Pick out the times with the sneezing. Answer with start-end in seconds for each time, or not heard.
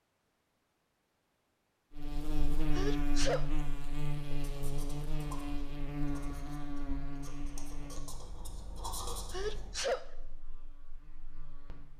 2.8-3.5, 9.3-10.1.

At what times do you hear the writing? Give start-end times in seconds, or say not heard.
4.3-9.8.